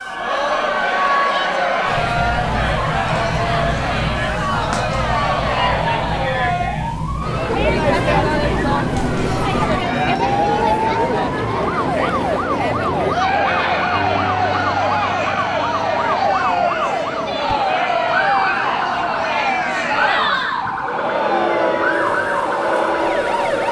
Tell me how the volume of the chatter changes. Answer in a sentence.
The volume of the chatter stays about the same.